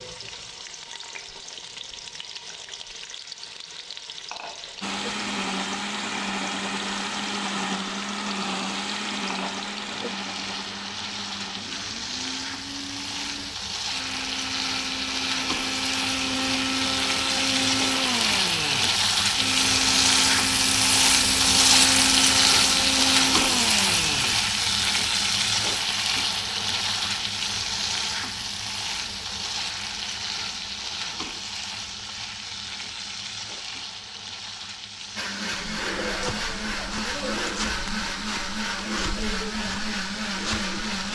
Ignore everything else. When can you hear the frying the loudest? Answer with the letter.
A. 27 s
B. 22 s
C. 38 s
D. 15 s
B.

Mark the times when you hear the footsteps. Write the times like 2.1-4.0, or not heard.
35.6-41.1.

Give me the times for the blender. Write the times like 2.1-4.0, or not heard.
4.8-24.6, 35.1-41.1.